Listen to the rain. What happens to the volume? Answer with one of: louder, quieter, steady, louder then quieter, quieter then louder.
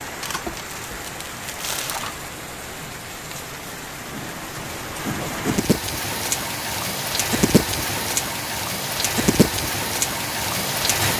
louder.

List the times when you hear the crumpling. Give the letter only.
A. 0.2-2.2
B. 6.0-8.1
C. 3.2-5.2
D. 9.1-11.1
A.